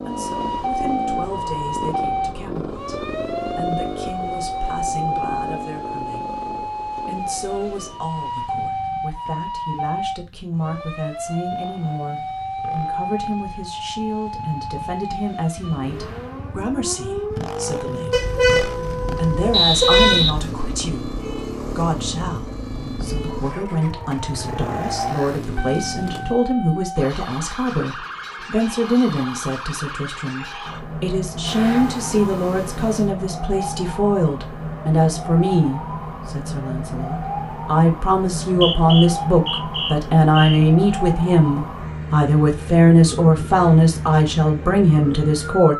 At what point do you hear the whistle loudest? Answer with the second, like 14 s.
20 s.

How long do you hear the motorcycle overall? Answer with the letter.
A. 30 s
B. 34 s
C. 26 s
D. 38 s
C.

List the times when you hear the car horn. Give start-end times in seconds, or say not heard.
18.1-20.4, 31.4-33.1.